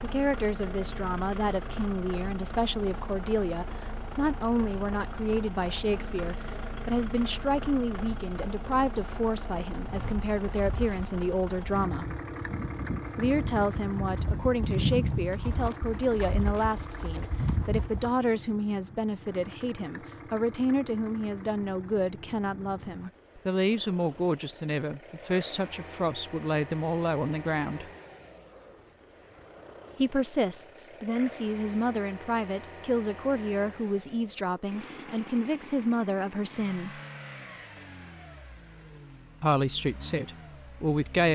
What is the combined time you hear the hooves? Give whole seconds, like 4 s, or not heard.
8 s.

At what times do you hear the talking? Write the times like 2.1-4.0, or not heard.
0.0-12.1, 13.2-27.9, 29.9-37.0, 39.4-41.3.